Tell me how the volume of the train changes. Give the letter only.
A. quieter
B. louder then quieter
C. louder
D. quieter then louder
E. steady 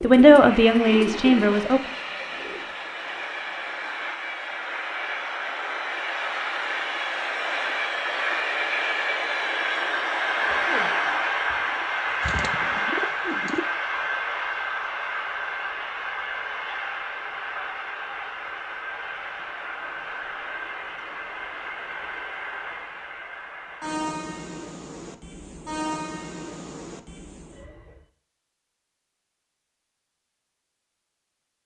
B.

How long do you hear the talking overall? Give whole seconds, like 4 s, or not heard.
2 s.